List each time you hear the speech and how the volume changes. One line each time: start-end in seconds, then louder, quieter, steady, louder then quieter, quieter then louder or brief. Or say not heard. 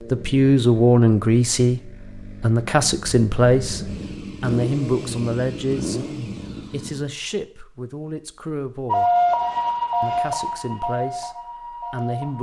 0.1-9.2 quieter
10.0-12.3 brief.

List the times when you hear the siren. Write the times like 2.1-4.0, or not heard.
8.8-12.3.